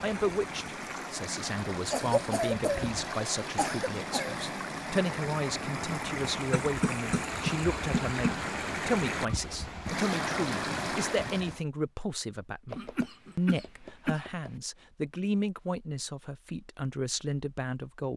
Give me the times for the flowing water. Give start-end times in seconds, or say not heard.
0.0-11.6.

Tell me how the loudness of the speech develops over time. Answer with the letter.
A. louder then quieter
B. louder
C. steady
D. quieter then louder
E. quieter
C.